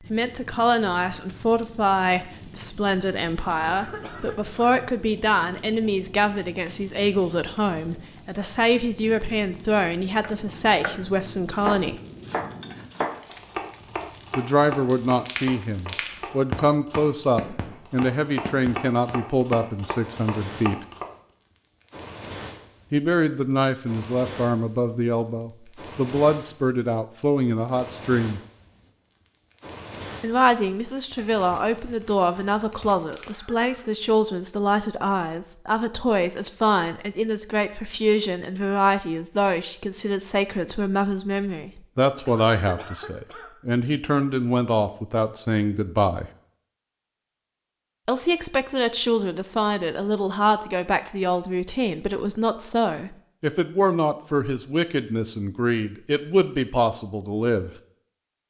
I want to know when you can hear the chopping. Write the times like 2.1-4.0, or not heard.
10.2-21.1.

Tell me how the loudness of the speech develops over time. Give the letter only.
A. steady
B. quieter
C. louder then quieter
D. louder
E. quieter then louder
A.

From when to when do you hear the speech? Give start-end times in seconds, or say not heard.
0.1-12.0, 14.3-20.8, 22.9-28.4, 30.2-46.3, 48.0-57.7.